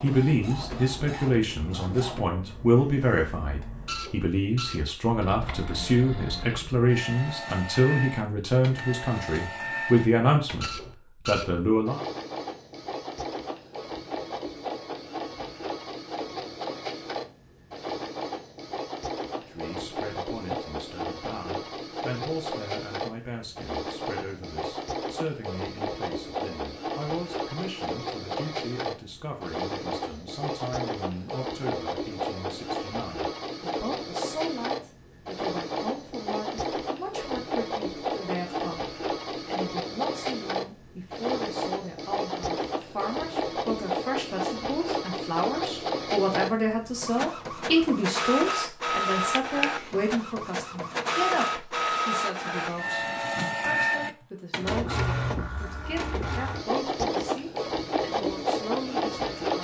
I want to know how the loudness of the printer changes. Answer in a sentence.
The volume of the printer goes up.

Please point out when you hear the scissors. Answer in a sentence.
You can hear the scissors from 49.1 to 49.7 s.